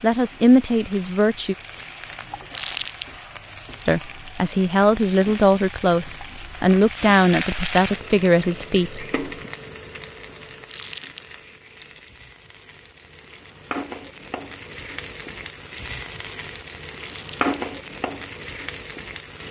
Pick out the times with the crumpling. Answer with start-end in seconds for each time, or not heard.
2.5-3.0, 10.7-11.2, 17.0-17.6.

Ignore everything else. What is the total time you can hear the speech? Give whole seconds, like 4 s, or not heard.
7 s.